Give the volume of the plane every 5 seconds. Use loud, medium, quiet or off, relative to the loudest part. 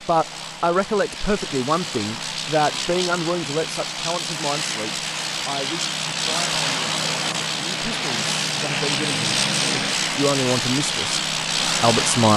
medium, loud, loud.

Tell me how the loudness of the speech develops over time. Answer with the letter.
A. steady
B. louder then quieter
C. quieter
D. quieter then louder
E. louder
D.